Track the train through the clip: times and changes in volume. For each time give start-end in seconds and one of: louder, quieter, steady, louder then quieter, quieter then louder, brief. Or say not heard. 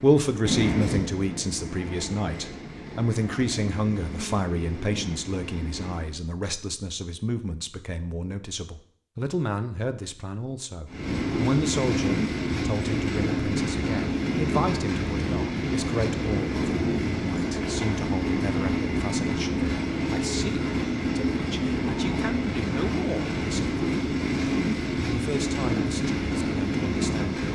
0.0-6.2 quieter
10.8-27.5 steady.